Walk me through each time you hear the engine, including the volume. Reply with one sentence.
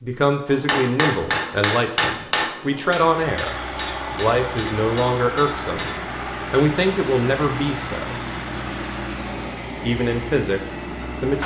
The engine can be heard from 3.0 to 11.4 s, at a steady volume.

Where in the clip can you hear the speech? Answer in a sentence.
The speech can be heard from 0.0 to 3.5 s, from 4.2 to 5.9 s, from 6.5 to 8.2 s and from 9.8 to 11.4 s.